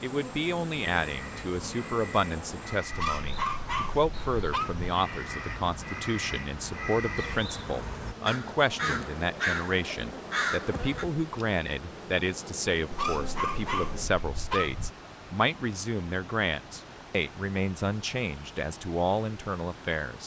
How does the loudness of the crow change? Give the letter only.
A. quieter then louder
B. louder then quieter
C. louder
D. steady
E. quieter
C.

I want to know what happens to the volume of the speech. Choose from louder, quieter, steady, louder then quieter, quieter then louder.
steady.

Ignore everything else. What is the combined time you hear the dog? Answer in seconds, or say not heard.
4 s.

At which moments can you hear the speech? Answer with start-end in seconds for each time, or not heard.
0.0-20.2.